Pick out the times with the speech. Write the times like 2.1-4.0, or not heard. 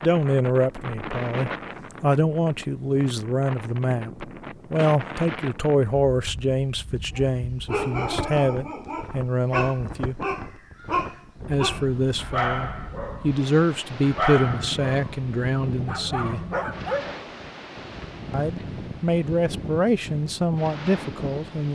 0.0-10.2, 11.4-16.4, 18.3-21.7.